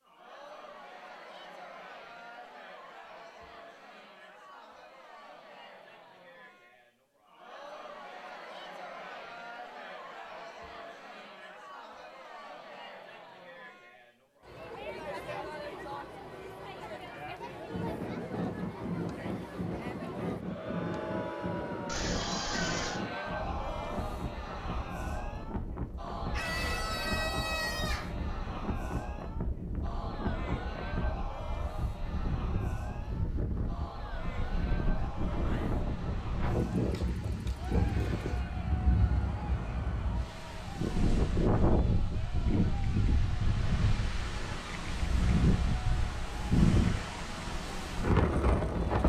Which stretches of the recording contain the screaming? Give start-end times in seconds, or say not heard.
21.9-23.0, 26.3-28.1.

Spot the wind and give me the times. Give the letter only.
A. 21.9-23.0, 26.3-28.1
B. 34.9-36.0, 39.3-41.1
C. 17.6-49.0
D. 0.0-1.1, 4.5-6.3
C.